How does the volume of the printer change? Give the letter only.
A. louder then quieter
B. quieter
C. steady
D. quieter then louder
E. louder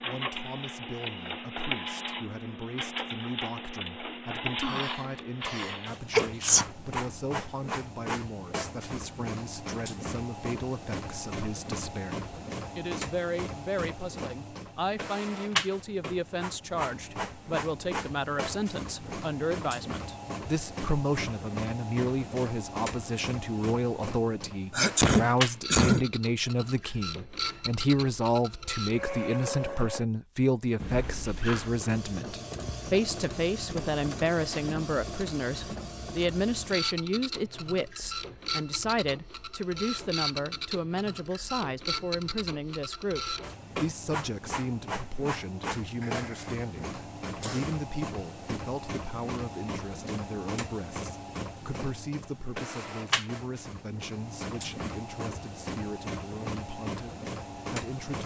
C.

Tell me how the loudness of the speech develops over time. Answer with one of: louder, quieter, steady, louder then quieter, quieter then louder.
louder then quieter.